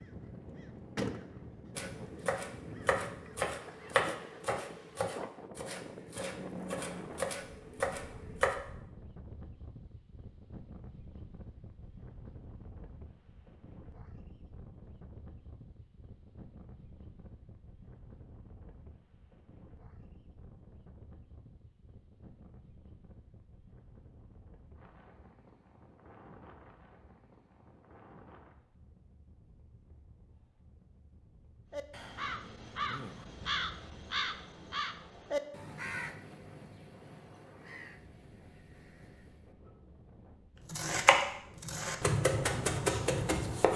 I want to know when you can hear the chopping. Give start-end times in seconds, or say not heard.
1.8-8.6, 40.6-43.7.